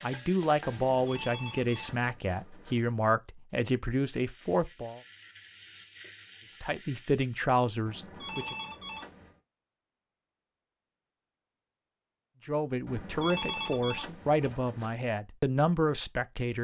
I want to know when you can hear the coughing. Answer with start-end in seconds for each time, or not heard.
not heard.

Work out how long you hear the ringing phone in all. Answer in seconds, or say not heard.
6 s.